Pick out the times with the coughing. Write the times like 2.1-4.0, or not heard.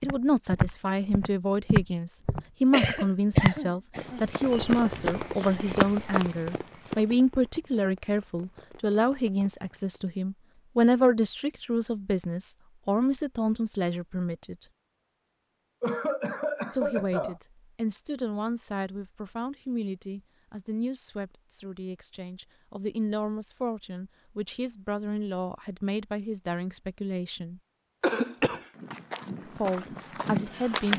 2.7-4.2, 15.8-17.4, 28.0-28.6.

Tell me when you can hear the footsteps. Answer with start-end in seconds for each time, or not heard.
0.0-7.0, 28.4-30.9.